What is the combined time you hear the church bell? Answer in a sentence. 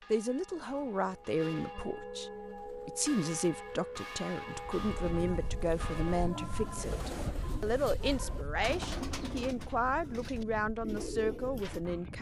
You can hear the church bell for 6 seconds altogether.